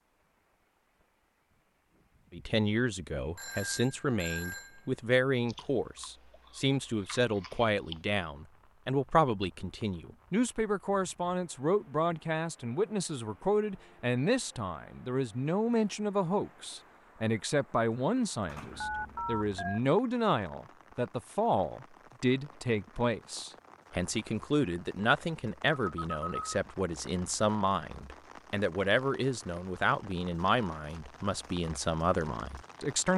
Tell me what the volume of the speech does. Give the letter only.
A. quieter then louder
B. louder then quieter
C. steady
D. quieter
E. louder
C.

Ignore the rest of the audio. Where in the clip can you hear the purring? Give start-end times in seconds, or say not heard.
not heard.